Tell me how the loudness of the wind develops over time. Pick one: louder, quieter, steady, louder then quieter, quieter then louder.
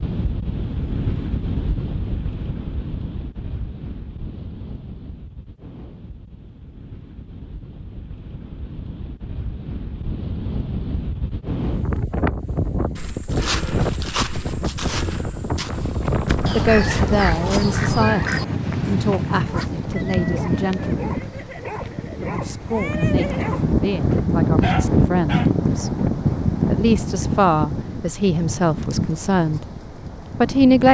louder.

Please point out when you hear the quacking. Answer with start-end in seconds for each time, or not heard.
16.4-18.4.